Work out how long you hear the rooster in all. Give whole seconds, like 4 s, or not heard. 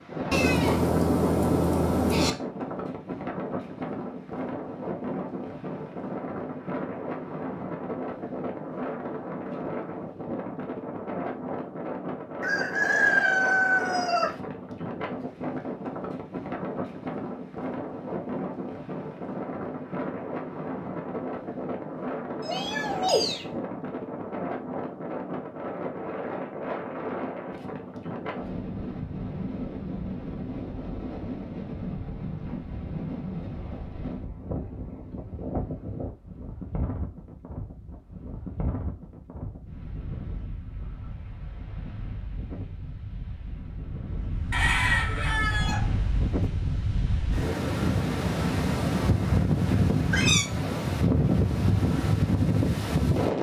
3 s.